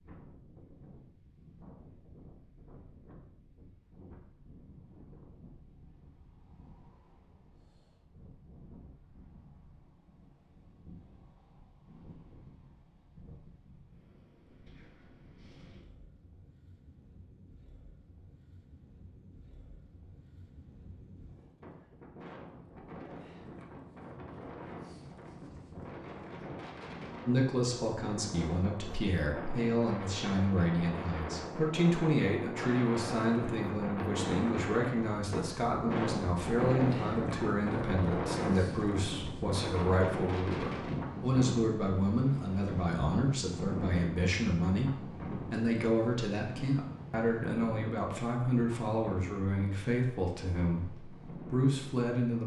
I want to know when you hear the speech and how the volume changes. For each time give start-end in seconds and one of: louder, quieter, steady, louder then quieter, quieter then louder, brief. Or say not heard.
27.2-52.4 steady.